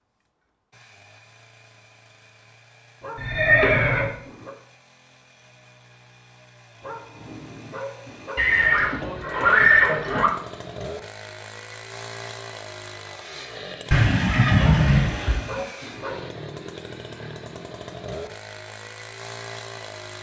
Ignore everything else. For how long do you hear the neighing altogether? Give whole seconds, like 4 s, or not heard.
5 s.